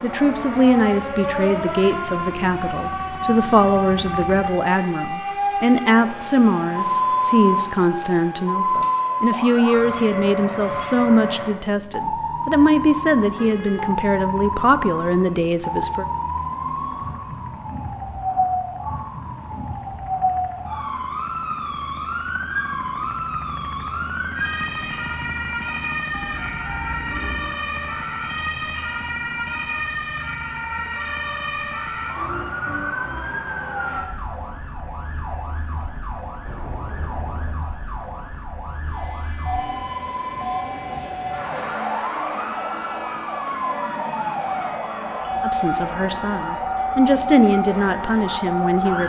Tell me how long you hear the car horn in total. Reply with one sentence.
You can hear the car horn for 3 seconds altogether.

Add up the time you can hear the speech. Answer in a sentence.
You can hear the speech for 20 seconds altogether.